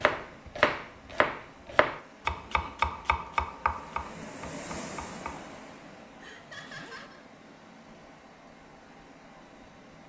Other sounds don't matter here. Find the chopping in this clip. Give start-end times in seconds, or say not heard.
0.0-5.4.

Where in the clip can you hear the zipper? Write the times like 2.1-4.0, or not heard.
6.3-7.1.